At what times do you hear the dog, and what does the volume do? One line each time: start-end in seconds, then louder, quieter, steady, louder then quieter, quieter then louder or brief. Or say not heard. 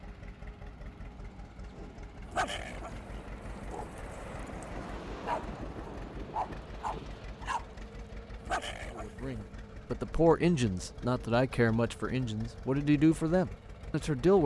1.8-7.7 quieter then louder
8.3-9.5 brief.